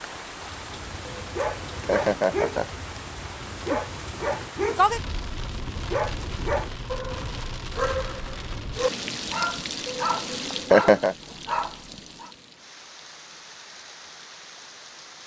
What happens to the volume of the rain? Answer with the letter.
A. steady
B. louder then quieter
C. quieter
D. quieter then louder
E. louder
B.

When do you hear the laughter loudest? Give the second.
11 s.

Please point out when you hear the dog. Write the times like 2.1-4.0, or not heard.
0.4-12.3.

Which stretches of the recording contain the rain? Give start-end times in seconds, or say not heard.
0.0-15.2.